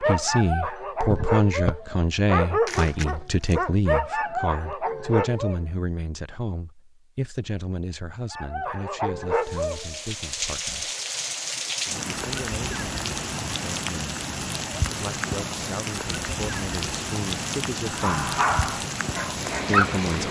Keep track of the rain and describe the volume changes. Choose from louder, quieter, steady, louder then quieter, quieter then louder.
steady.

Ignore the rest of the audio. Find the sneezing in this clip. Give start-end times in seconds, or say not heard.
1.1-1.8.